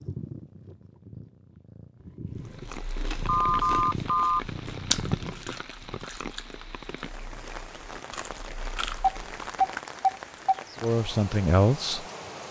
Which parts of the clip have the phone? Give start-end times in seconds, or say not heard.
3.2-4.4, 8.9-10.6.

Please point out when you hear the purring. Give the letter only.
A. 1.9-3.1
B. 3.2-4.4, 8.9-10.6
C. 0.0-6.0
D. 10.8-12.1
C.